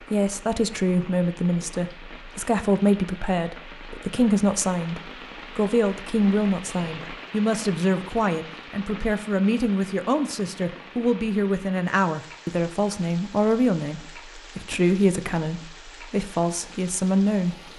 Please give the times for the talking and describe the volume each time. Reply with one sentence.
You can hear the talking from 0.0 to 17.7 s, at a steady volume.